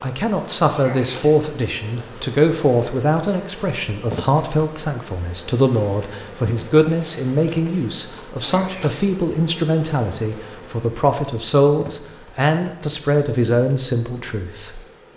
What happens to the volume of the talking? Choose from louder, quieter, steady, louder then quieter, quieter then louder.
steady.